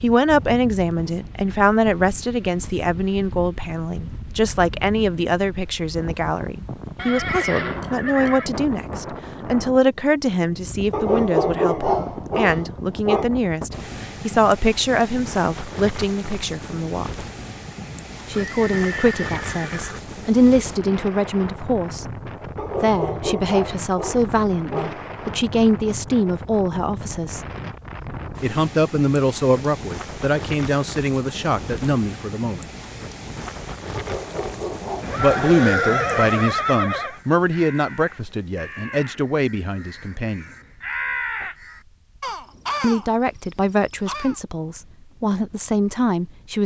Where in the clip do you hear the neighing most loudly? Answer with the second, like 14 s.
36 s.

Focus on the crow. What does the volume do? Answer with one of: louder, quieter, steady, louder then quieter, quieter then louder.
louder.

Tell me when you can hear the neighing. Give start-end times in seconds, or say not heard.
7.0-8.5, 18.3-20.0, 35.0-37.2.